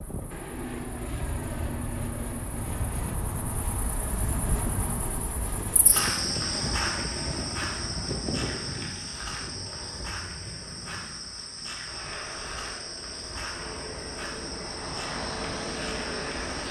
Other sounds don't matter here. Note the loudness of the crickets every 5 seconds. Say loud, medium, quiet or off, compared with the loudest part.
medium, loud, medium, medium.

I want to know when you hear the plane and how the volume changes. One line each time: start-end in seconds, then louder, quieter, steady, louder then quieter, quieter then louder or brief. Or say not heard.
0.0-16.6 quieter then louder.